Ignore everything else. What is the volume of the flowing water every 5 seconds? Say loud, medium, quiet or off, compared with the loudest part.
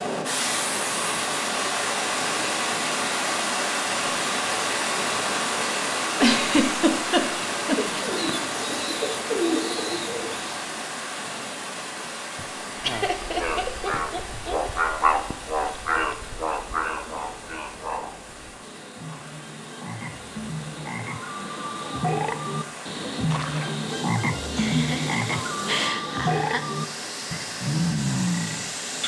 loud, loud, medium, quiet, quiet, medium.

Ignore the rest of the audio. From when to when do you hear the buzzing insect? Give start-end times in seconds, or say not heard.
not heard.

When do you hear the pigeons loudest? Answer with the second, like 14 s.
9 s.